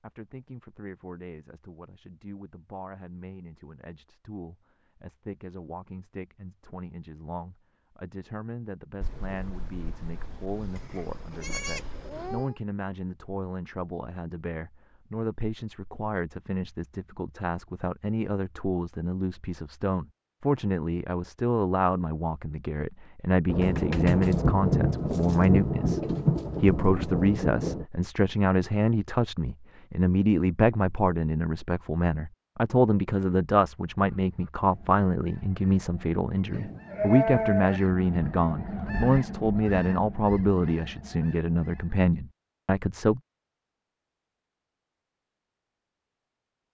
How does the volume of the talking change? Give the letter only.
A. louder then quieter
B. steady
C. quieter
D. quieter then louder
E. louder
E.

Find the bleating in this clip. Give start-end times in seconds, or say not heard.
10.8-12.6, 36.5-37.8.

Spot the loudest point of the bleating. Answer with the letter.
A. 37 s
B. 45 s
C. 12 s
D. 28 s
A.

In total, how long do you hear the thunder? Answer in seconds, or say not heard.
8 s.